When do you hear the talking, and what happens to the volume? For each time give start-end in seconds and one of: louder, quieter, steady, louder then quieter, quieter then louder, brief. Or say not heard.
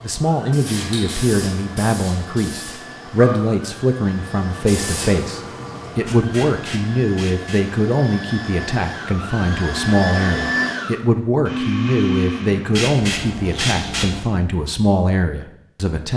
0.0-16.1 steady.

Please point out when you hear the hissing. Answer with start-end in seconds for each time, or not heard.
0.0-7.7, 12.7-14.2.